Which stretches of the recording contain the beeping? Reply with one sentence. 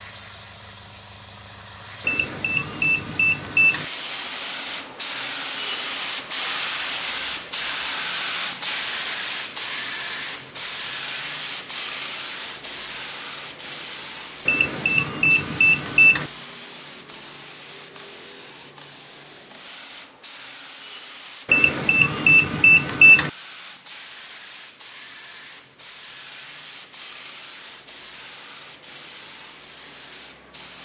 The beeping can be heard from 2.0 to 3.9 s, from 14.4 to 16.2 s and from 21.5 to 23.3 s.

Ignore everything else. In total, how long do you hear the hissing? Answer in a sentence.
The hissing can be heard for 31 seconds in total.